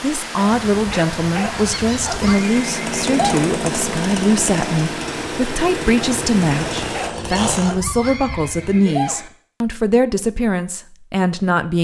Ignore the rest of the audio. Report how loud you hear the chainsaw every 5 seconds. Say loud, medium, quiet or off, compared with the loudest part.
loud, loud, off.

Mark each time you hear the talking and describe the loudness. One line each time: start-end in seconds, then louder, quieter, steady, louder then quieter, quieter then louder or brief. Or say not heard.
0.0-11.7 steady.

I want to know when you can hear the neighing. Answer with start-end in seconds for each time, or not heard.
2.2-3.5, 8.0-9.3.